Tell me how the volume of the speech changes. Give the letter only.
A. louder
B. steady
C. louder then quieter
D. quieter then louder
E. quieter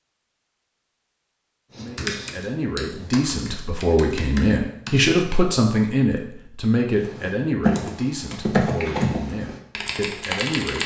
C.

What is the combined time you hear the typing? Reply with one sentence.
The typing can be heard for 7 seconds in total.